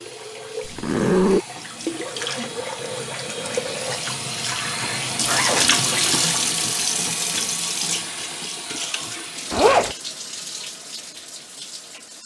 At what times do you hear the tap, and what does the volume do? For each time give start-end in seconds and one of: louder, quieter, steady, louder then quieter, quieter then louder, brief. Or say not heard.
0.0-12.2 louder then quieter.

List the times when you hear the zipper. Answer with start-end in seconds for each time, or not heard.
0.7-1.4, 4.8-5.8, 9.5-9.9.